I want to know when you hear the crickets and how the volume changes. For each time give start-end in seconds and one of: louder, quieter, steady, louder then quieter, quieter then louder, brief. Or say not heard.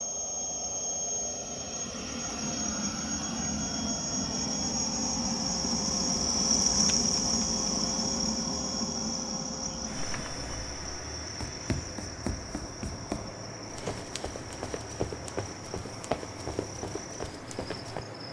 0.1-18.2 louder then quieter.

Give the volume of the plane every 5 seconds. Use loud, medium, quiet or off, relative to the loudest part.
loud, loud, medium, medium.